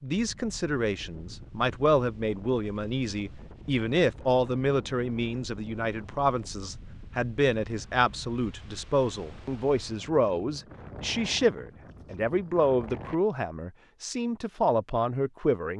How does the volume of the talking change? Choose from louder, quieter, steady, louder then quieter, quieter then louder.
steady.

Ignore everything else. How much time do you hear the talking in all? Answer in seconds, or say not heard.
16 s.